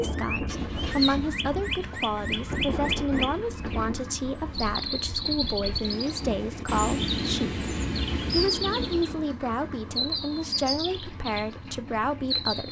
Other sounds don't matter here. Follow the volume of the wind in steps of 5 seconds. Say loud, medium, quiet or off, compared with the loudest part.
loud, loud, off.